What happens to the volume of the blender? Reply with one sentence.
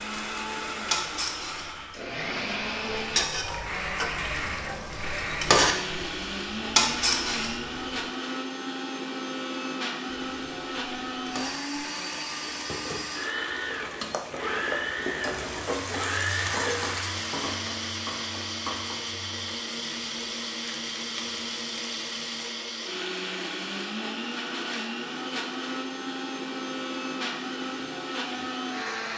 The loudness of the blender stays about the same.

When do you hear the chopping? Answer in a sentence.
You can hear the chopping from 14.1 to 15.4 s.